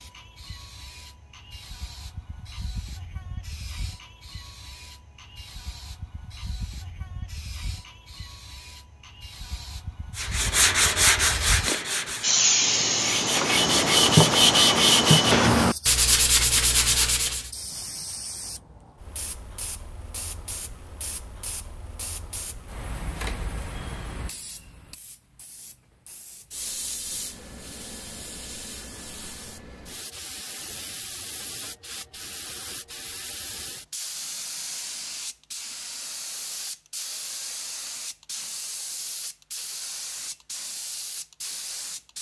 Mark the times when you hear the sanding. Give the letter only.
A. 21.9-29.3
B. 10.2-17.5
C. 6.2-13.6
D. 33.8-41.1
B.